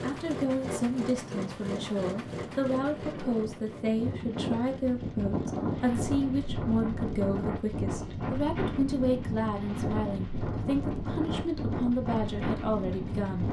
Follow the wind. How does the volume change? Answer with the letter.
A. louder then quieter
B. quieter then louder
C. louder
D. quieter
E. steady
C.